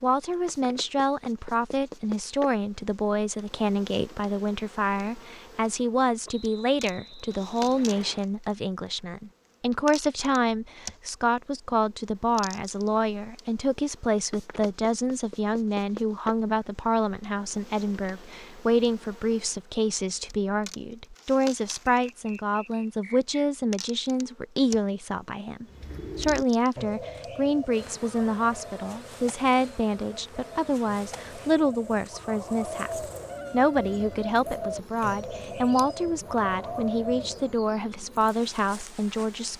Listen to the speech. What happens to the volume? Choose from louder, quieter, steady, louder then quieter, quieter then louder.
steady.